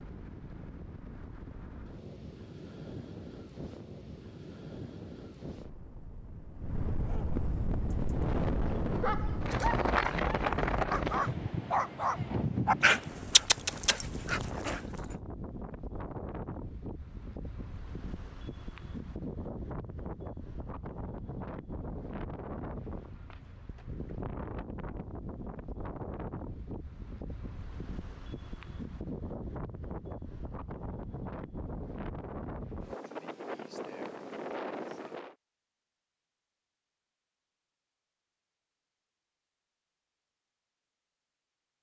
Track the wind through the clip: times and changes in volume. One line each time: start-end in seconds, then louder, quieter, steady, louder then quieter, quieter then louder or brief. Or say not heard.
0.0-35.4 louder then quieter.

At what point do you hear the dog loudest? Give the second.
13 s.